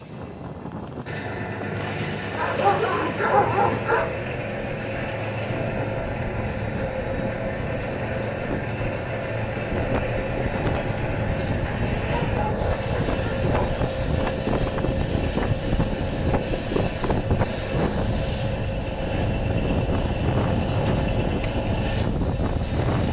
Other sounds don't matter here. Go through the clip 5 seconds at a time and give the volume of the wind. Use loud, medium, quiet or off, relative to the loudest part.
medium, medium, loud, loud, loud.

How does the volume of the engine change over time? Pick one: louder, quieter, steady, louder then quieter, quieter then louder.
steady.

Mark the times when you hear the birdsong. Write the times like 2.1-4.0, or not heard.
not heard.